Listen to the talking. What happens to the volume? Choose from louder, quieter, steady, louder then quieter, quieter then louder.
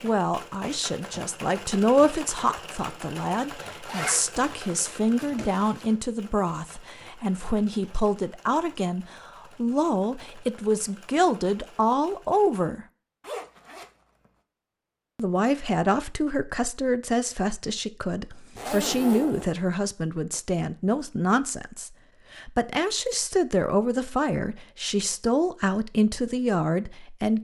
steady.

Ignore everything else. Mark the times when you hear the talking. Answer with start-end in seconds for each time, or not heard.
0.0-12.8, 15.2-27.3.